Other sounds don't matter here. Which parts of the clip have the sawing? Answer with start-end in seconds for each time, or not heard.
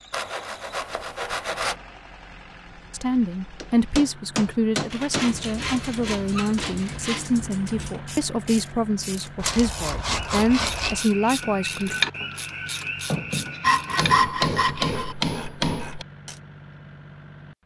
0.1-1.8, 4.9-7.3, 9.4-11.1, 13.6-15.2.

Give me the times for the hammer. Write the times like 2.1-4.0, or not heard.
3.6-5.3, 13.1-16.1.